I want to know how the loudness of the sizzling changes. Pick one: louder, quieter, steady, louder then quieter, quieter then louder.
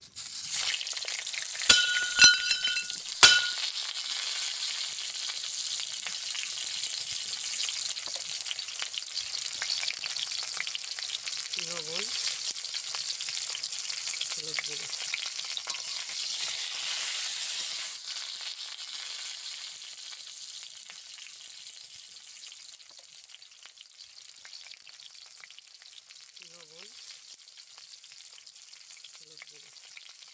quieter.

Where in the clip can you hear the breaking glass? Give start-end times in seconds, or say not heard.
1.6-3.5.